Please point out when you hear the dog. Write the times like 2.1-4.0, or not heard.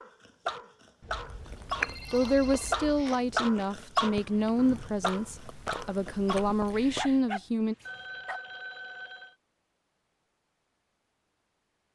0.0-8.4.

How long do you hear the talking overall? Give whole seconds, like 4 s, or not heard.
6 s.